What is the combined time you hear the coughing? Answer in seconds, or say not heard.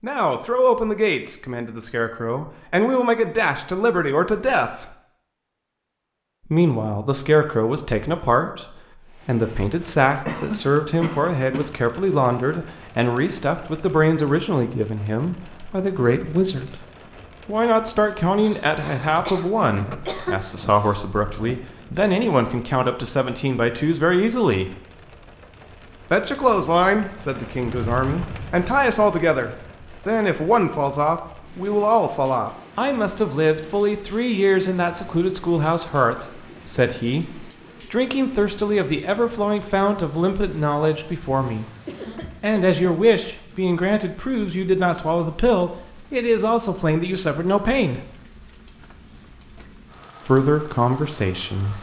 4 s.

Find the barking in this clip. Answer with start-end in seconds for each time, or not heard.
not heard.